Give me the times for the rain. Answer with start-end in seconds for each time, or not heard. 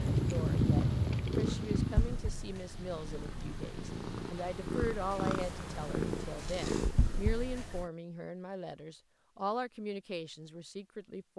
0.0-6.5.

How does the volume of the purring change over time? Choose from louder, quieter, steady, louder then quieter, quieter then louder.
quieter then louder.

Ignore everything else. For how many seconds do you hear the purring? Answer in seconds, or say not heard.
8 s.